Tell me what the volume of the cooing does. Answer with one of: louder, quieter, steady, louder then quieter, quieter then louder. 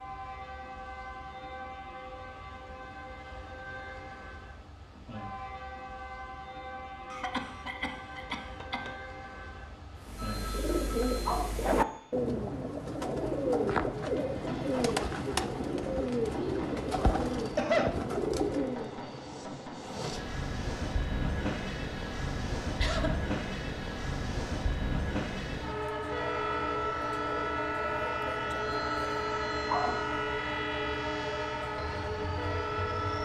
steady.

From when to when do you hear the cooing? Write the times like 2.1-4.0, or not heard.
10.0-19.0.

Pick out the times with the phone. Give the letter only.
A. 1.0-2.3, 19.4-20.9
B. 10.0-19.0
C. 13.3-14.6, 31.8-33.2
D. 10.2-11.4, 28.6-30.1
D.